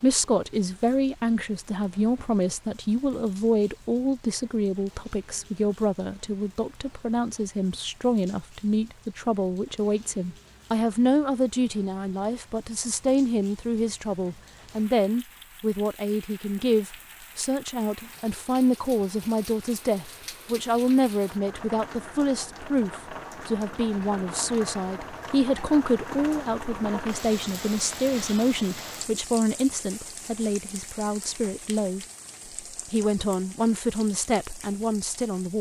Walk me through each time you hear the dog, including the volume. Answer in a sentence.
You can't hear the dog here.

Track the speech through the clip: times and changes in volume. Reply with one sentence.
The speech can be heard from 0.0 to 32.0 s, at a steady volume; and briefly from 32.9 to 35.5 s.